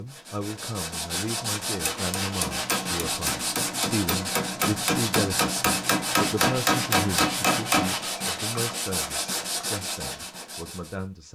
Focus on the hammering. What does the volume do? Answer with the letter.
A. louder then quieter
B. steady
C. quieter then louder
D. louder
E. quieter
D.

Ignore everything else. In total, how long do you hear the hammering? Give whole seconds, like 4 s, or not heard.
6 s.